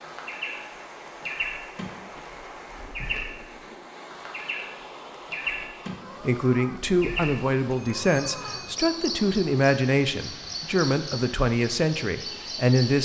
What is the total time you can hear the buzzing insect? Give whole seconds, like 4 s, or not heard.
not heard.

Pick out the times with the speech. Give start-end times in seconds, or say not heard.
6.2-12.9.